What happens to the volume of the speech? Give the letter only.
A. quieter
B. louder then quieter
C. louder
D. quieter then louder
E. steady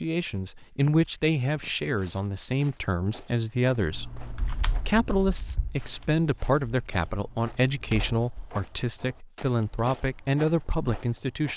E.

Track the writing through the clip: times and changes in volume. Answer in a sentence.
The writing can't be heard in this clip.